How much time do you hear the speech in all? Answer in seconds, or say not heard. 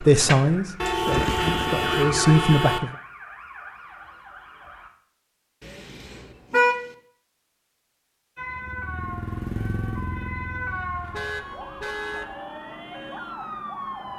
3 s.